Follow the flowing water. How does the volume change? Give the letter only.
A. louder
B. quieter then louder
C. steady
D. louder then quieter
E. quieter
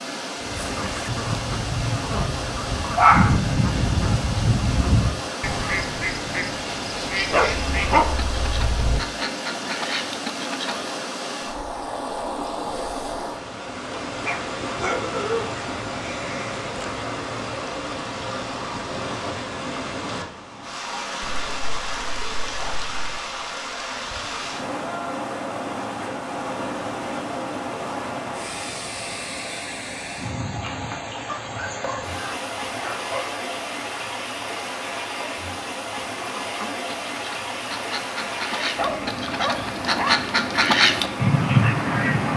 C.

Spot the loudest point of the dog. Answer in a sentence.
The loudest moment of the dog is at 3 seconds.